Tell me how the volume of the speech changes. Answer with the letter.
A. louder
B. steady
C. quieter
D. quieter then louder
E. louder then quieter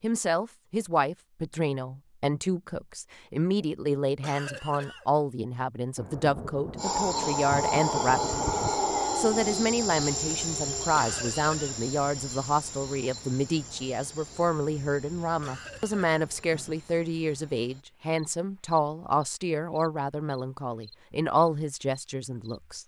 B.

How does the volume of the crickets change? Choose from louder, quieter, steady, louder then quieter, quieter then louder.
quieter.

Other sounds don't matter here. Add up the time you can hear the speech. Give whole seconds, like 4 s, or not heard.
23 s.